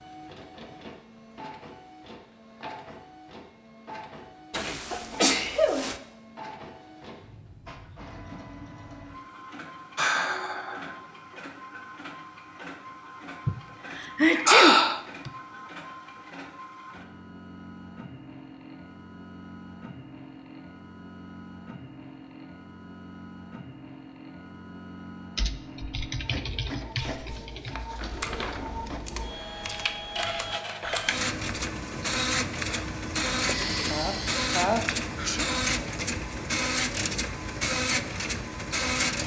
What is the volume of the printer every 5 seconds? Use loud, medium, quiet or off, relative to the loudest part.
quiet, quiet, quiet, quiet, quiet, medium, loud, loud.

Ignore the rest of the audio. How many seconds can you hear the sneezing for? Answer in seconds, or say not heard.
5 s.